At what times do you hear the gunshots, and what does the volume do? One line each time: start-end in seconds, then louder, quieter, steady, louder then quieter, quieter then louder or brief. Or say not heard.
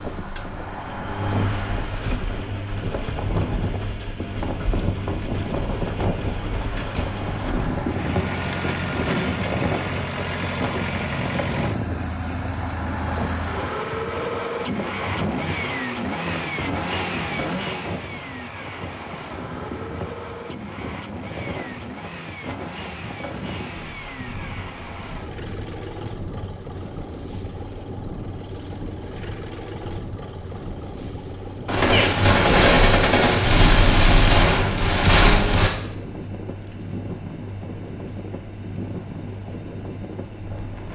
31.6-35.7 steady.